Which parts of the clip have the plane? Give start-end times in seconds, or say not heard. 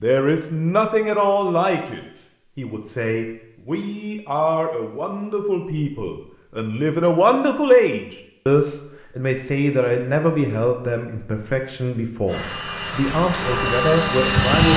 12.2-14.7.